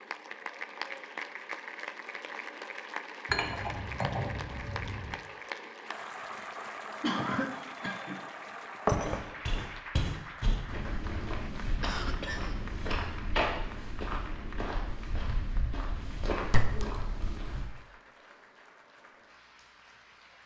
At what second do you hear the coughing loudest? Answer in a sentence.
The loudest moment of the coughing is at 7 seconds.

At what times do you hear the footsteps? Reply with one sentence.
You can hear the footsteps from 9.0 to 17.6 s.